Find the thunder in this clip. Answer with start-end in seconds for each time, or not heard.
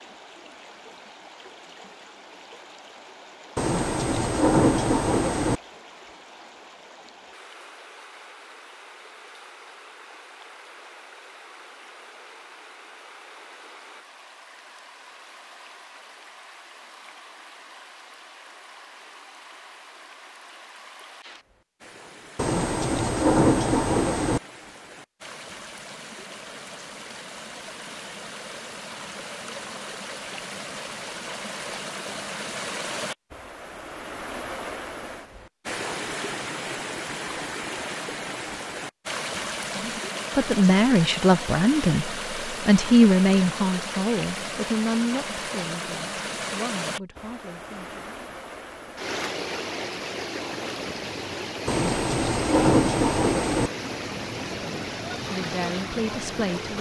3.5-5.6, 22.4-24.4, 51.6-53.7.